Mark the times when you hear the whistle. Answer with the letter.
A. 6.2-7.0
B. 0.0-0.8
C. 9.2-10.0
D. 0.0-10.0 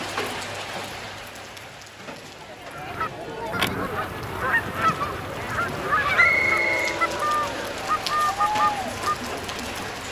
A.